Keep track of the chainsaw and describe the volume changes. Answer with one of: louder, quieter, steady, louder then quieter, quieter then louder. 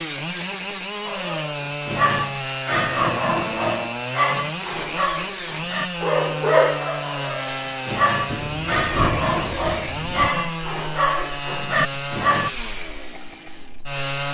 steady.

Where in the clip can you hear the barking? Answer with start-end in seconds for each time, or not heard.
1.1-12.5.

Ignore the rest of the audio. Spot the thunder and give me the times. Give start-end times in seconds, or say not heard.
8.2-10.3.